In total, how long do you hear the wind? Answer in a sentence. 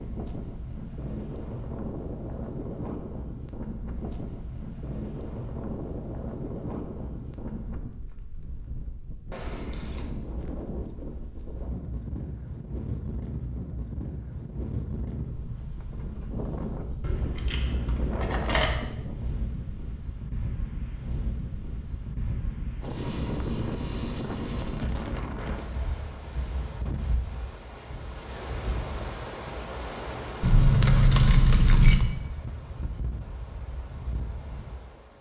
The wind can be heard for 35 seconds in total.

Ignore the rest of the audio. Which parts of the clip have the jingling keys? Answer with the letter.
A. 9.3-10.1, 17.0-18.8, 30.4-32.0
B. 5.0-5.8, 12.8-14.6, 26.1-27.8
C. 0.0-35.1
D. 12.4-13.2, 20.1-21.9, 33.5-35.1
A.